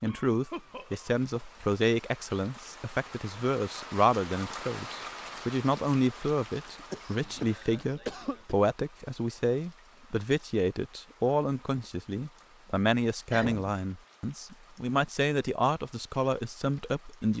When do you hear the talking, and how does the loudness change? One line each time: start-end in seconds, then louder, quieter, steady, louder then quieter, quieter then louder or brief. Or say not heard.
0.0-17.3 steady.